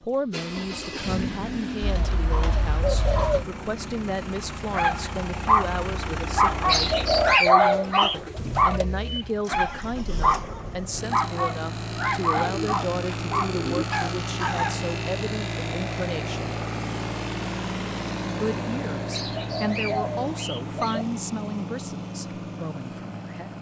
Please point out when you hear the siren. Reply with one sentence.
You can't hear the siren here.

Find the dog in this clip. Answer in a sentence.
The dog can be heard from 4.7 to 14.9 s.